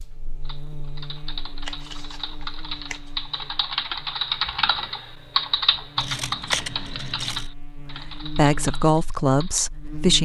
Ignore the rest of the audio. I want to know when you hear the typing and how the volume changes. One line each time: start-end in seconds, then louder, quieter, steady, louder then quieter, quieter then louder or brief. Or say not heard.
0.5-9.7 louder then quieter.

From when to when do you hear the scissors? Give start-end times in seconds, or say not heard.
1.6-3.4, 6.0-7.5.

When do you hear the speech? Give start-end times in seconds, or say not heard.
7.8-10.2.